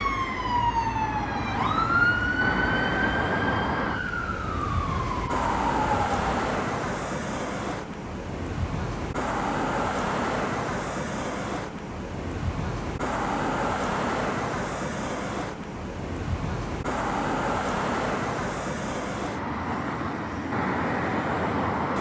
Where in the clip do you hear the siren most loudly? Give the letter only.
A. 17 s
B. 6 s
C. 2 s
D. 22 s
C.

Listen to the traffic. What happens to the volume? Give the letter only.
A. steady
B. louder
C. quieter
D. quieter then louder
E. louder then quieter
A.